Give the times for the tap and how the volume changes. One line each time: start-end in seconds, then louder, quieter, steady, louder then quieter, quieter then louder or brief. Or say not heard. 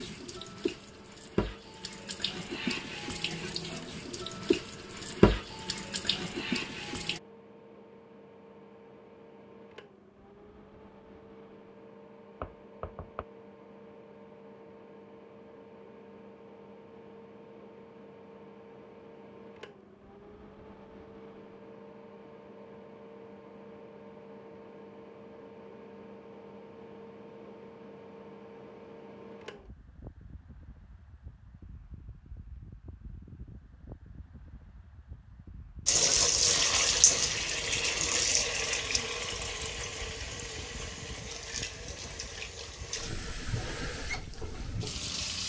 0.0-7.2 louder then quieter
35.9-45.4 quieter.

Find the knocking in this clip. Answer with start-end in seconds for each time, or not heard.
12.4-13.2.